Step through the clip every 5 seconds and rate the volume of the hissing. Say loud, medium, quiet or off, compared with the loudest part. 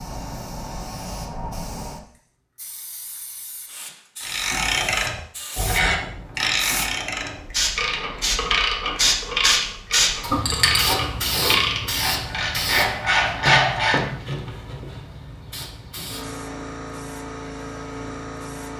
medium, loud, loud, medium.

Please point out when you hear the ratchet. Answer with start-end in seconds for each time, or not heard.
4.2-14.1.